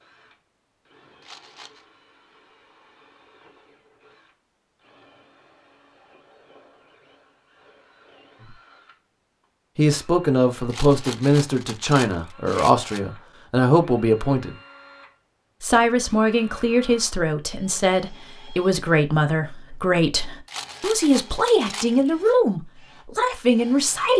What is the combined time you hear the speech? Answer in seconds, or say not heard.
13 s.